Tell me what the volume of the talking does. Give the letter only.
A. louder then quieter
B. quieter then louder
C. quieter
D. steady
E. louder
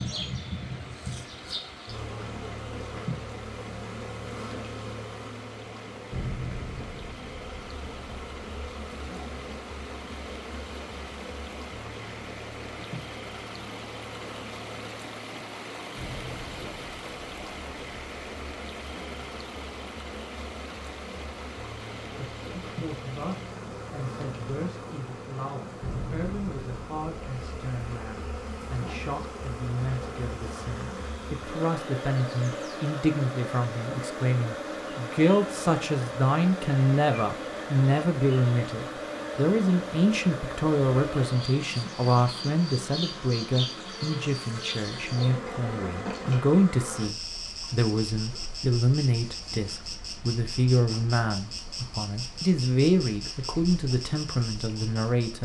E.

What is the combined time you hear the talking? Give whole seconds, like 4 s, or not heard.
33 s.